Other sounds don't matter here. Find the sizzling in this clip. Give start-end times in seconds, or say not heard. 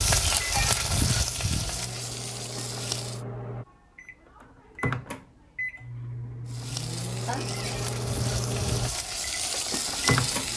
0.0-3.2, 6.5-10.5.